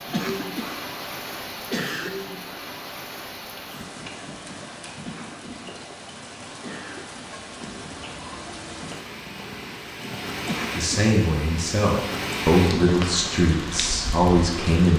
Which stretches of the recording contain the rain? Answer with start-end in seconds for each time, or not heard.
0.0-14.9.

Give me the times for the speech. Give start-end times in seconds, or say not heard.
10.8-14.9.